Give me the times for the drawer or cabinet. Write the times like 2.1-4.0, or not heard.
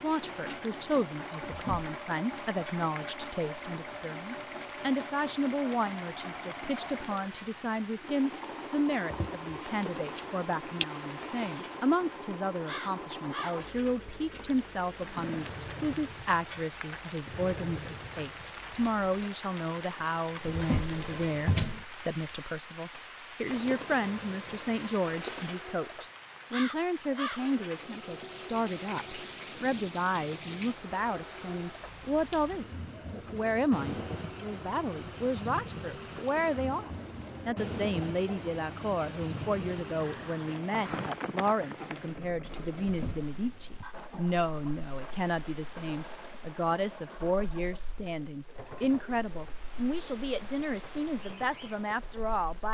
1.4-1.9, 20.4-21.9, 42.8-43.9.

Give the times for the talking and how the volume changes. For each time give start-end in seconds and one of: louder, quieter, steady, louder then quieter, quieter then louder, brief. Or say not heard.
0.0-52.6 steady.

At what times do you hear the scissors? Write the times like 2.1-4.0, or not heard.
9.1-10.8.